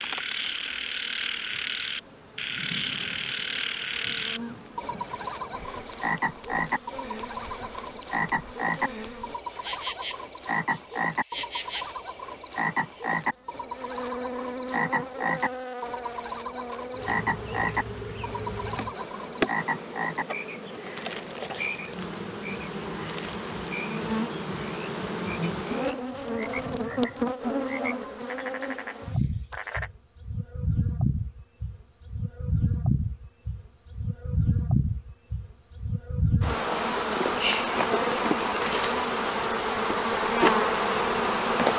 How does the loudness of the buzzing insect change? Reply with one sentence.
The volume of the buzzing insect goes up.